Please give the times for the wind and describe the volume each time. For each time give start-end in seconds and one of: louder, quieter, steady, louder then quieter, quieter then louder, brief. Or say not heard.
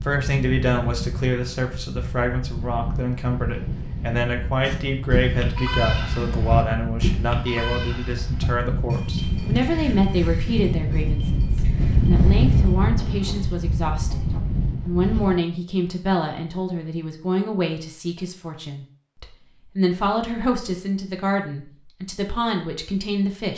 0.0-15.3 louder.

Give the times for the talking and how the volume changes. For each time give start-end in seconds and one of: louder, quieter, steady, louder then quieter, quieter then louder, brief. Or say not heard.
0.0-23.5 steady.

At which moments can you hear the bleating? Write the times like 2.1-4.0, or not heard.
4.7-15.2.